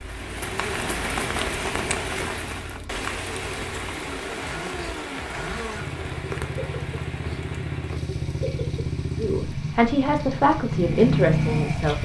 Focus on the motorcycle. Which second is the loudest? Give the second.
11 s.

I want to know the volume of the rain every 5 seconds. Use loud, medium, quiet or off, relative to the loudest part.
loud, medium, quiet.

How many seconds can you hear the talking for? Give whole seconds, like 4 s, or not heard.
3 s.